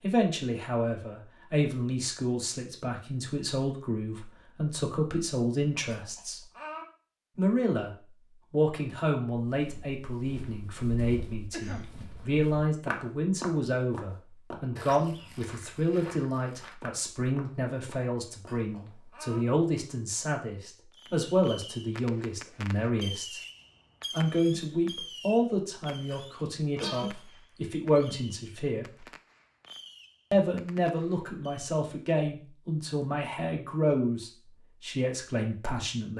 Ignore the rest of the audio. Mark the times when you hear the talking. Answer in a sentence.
The talking can be heard from 0.0 to 6.4 s, from 7.3 to 7.9 s, from 8.5 to 23.4 s, from 24.1 to 29.1 s and from 30.3 to 36.1 s.